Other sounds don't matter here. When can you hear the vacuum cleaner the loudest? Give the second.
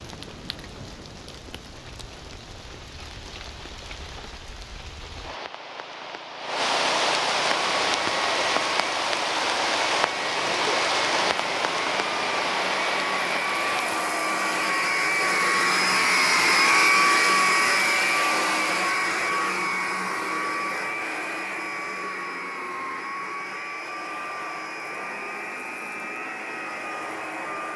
17 s.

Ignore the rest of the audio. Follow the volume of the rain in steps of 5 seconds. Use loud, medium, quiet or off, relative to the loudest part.
quiet, loud, loud, off, off, off.